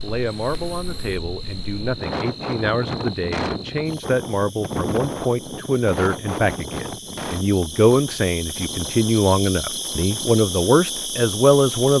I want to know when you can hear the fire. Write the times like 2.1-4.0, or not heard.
not heard.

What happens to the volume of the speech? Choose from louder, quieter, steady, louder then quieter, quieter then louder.
louder.